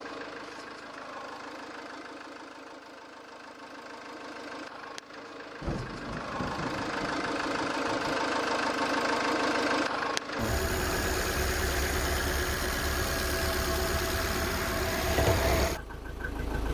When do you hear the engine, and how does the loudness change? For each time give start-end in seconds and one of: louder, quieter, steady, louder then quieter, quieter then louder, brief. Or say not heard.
0.0-16.7 louder.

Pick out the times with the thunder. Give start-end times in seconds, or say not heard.
5.6-8.2.